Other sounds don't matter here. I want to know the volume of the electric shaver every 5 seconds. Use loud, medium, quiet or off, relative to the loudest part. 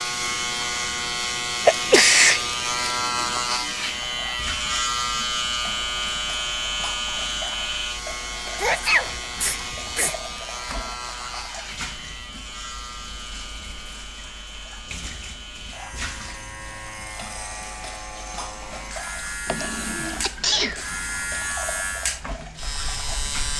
loud, loud, medium, medium, medium.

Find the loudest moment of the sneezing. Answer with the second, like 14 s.
2 s.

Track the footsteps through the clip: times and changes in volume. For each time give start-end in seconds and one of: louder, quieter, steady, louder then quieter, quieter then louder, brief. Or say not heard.
not heard.